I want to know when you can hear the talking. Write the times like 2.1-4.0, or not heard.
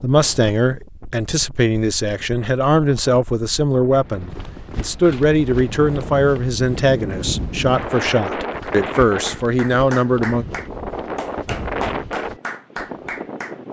0.0-10.4.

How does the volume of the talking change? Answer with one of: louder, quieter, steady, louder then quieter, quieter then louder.
steady.